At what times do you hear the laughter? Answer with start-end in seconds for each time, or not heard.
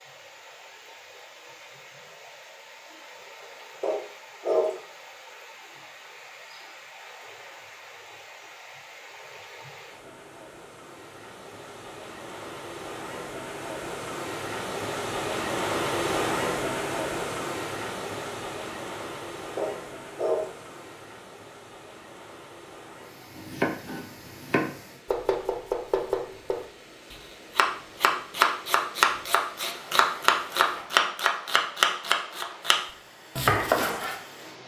not heard.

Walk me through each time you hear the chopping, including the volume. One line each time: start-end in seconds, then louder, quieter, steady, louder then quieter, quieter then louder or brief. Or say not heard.
23.4-34.2 louder.